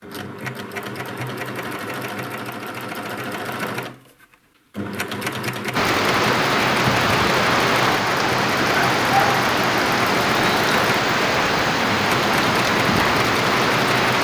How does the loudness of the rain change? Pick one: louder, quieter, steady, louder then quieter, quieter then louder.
steady.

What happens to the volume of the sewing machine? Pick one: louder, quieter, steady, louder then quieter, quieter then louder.
steady.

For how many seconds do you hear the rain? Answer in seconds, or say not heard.
8 s.